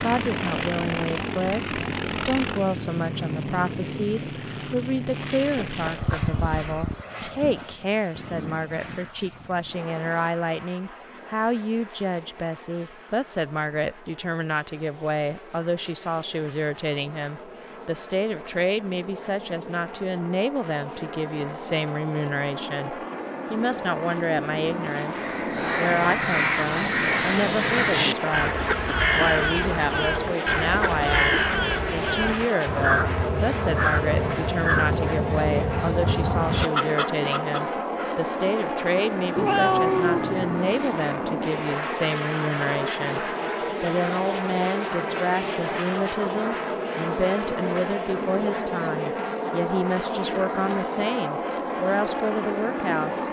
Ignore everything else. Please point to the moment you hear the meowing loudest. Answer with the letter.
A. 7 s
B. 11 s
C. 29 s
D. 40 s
D.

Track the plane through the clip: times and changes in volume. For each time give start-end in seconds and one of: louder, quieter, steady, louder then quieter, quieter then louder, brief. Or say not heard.
0.0-53.2 quieter then louder.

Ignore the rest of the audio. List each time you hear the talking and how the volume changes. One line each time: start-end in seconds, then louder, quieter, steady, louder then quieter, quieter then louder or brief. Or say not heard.
0.0-53.2 steady.